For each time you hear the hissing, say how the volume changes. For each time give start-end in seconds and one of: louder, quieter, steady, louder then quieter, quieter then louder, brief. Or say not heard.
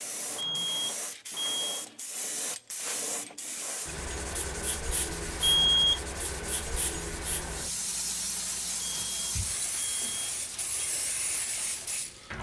0.0-12.3 steady.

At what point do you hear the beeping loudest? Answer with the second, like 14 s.
6 s.